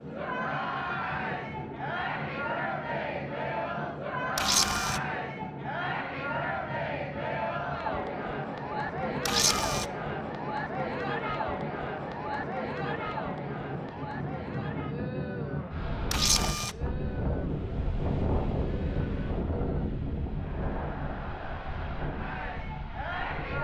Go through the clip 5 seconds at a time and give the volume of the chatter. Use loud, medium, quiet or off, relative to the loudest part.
loud, loud, loud, medium, medium.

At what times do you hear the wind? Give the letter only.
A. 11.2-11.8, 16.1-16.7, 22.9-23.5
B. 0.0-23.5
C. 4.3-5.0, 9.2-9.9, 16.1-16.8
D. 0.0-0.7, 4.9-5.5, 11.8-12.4
B.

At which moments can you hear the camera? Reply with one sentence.
The camera can be heard from 4.3 to 5.0 s, from 9.2 to 9.9 s and from 16.1 to 16.8 s.